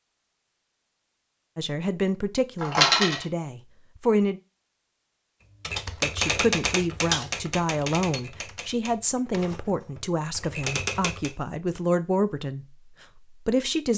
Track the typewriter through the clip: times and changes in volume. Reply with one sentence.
You can hear the typewriter from 5.6 to 11.3 s, getting quieter then louder.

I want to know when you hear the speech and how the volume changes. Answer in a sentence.
The speech can be heard briefly from 1.6 to 4.4 s; and from 6.0 to 13.9 s, at a steady volume.